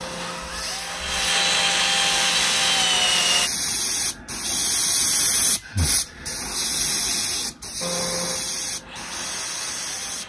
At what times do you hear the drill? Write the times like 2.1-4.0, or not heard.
0.0-3.5, 7.8-10.2.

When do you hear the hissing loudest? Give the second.
5 s.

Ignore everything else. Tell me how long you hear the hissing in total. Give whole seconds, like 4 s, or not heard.
10 s.